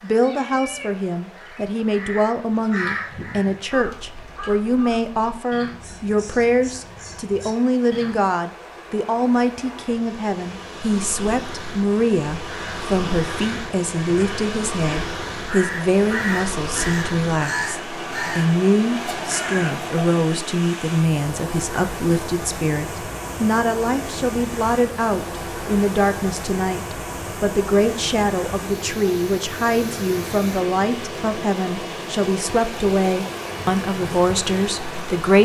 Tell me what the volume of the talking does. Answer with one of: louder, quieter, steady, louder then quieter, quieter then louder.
steady.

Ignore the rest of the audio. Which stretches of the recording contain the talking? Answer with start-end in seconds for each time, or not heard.
0.0-35.3.